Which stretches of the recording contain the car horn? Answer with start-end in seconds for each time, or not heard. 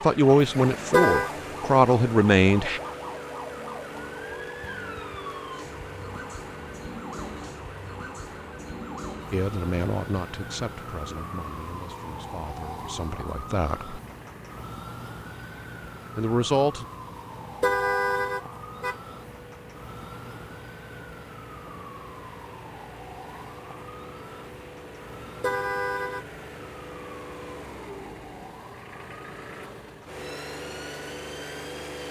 0.9-1.3, 17.6-18.9, 25.4-26.2.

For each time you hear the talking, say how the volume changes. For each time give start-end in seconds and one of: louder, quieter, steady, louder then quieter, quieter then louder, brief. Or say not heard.
0.0-2.8 brief
9.3-13.9 quieter then louder
16.1-16.9 brief.